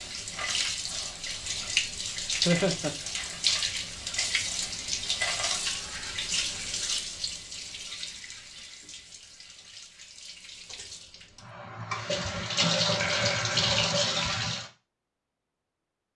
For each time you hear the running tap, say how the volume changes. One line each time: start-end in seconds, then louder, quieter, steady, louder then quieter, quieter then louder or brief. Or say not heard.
0.0-14.7 quieter then louder.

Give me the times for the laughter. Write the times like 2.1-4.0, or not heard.
2.5-3.0, 12.9-13.8.